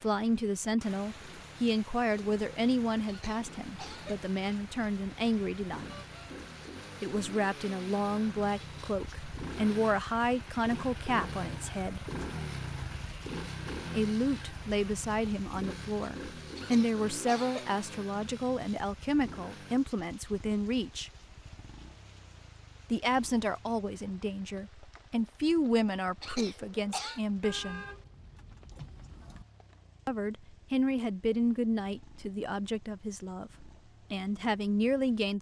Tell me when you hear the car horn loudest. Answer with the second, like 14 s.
28 s.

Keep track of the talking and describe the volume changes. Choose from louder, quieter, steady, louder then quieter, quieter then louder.
steady.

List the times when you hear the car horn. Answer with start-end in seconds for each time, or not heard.
5.8-6.3, 27.4-29.4.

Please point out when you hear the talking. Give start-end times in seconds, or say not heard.
0.0-6.0, 7.0-12.0, 13.9-21.1, 22.9-27.9, 30.1-35.3.